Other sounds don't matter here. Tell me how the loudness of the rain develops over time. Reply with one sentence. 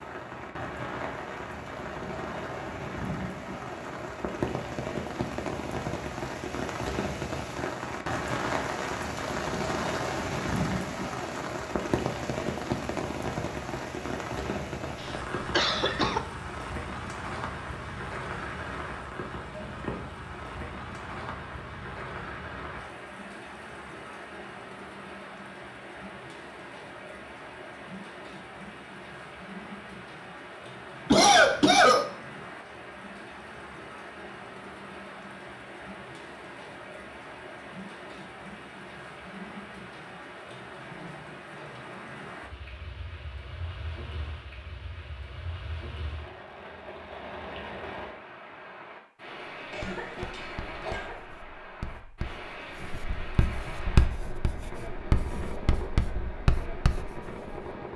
The volume of the rain goes down.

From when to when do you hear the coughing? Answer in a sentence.
You can hear the coughing from 15.0 to 16.2 s, from 31.1 to 32.0 s and from 49.7 to 51.2 s.